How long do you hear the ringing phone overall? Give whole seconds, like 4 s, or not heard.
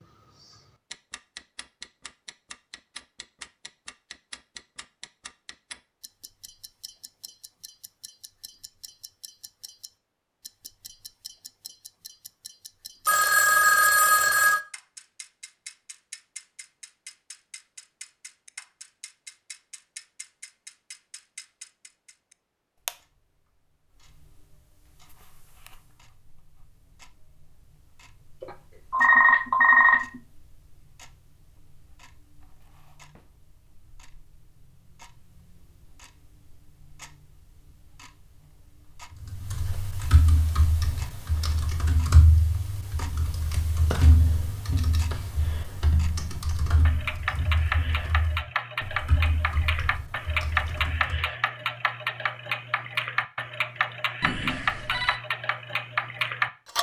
4 s.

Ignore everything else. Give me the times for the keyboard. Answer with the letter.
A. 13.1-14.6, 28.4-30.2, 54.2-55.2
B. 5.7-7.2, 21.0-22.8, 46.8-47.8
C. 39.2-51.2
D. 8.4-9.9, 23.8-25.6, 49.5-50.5
C.